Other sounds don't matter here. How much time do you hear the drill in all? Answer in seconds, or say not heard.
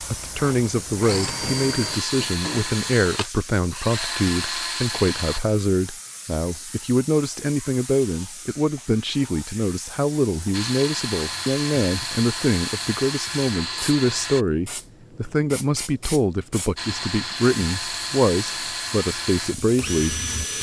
13 s.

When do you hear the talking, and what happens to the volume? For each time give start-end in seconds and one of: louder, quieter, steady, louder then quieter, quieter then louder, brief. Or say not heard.
0.1-20.2 steady.